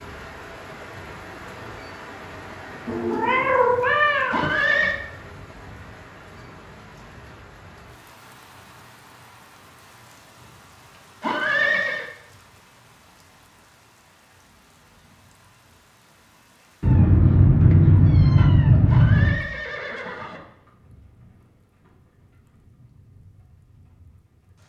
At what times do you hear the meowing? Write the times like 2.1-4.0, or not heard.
2.9-4.5, 16.8-19.4.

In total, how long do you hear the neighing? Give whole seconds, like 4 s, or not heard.
3 s.